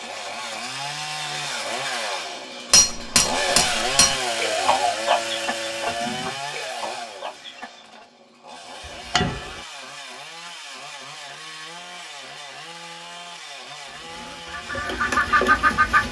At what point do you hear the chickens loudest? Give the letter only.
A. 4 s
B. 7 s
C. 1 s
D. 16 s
D.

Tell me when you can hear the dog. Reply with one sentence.
You can't hear the dog here.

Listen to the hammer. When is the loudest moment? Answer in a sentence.
The loudest moment of the hammer is at 3 seconds.